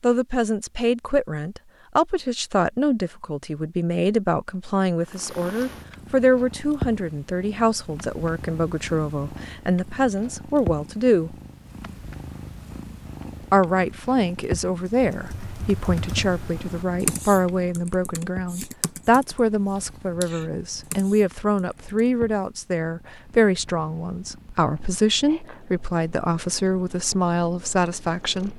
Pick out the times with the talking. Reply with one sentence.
You can hear the talking from 0.0 to 11.3 s and from 13.4 to 28.5 s.